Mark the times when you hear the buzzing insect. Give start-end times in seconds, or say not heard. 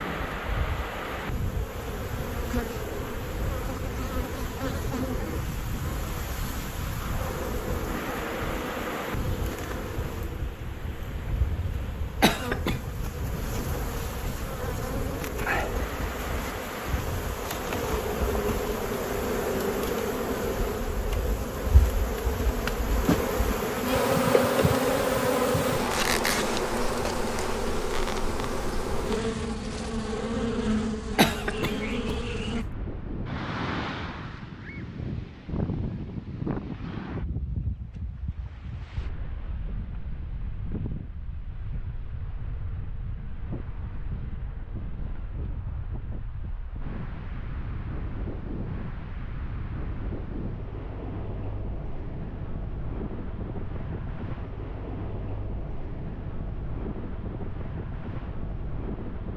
0.0-32.6.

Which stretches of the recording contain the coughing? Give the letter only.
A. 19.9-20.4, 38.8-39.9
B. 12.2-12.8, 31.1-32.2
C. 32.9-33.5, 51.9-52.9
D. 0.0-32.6
B.